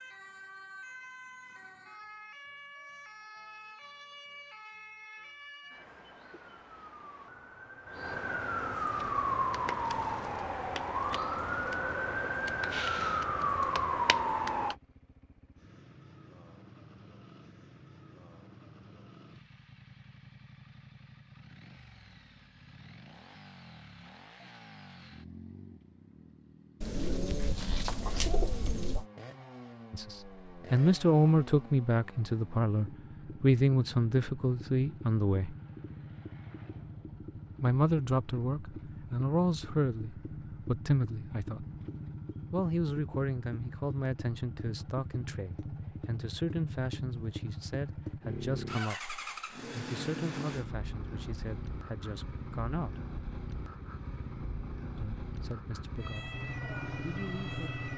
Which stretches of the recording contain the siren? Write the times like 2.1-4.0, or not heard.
0.0-14.8, 56.0-57.9.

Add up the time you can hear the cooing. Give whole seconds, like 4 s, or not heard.
2 s.